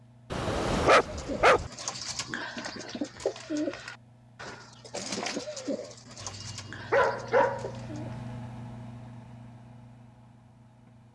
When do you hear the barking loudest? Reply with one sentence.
The volume of the barking peaks at 1 second.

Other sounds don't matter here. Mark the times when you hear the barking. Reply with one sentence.
The barking can be heard from 0.3 to 1.7 s and from 6.2 to 7.7 s.